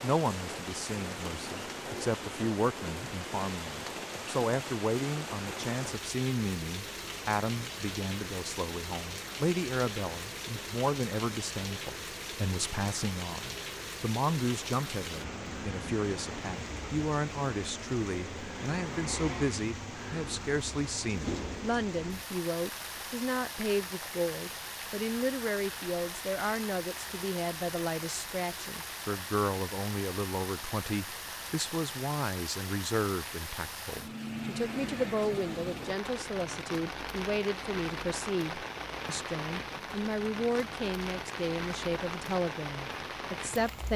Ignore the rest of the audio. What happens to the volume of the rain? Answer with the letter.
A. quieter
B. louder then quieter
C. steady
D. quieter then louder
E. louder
C.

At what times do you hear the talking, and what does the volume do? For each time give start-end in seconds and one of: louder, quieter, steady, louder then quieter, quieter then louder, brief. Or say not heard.
0.0-43.9 steady.